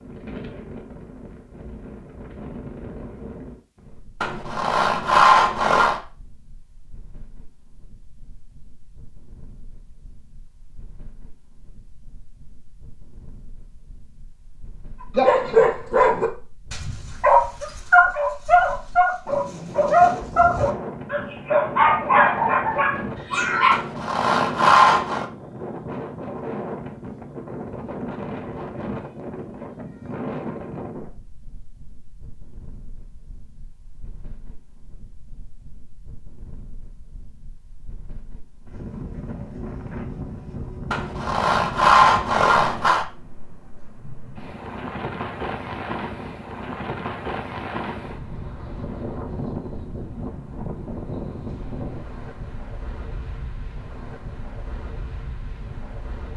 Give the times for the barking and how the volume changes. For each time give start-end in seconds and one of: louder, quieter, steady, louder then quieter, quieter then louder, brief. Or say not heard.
15.2-23.8 steady.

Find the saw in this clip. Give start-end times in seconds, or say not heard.
4.2-6.0, 23.7-25.2, 40.9-43.0.